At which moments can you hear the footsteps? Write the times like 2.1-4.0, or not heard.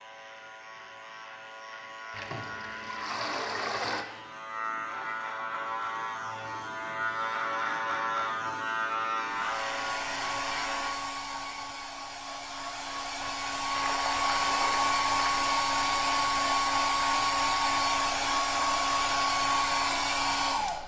not heard.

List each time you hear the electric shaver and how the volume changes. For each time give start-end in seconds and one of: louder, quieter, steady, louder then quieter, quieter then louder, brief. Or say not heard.
0.0-10.9 louder.